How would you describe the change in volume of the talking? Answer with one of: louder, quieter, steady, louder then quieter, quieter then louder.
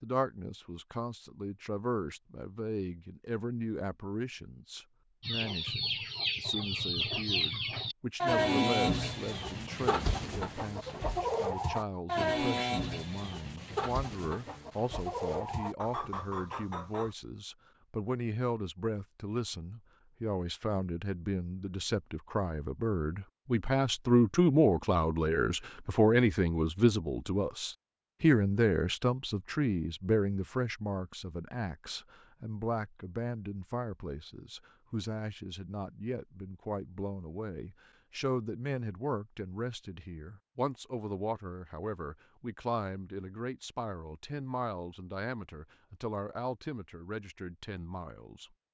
louder then quieter.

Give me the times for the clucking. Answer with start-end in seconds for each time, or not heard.
5.2-17.1.